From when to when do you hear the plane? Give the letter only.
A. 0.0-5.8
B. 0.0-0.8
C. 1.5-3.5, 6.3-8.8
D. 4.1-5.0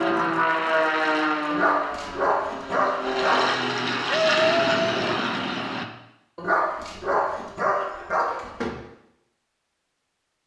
A.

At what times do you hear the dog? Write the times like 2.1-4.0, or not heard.
1.5-3.5, 6.3-8.8.